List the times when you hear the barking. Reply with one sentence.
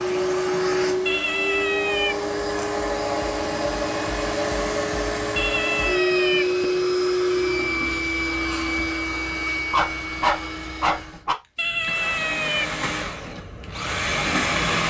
The barking can be heard from 9.7 to 11.3 s.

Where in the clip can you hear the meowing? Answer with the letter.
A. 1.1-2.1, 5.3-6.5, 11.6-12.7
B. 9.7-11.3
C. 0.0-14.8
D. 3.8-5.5
A.